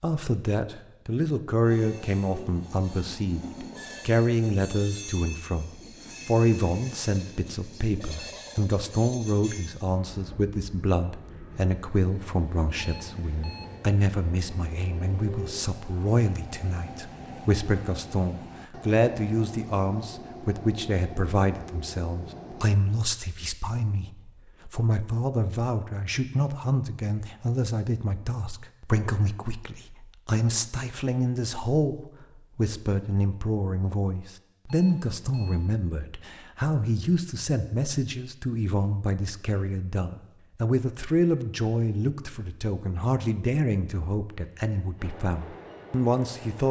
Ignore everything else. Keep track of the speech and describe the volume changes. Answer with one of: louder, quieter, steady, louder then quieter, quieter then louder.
steady.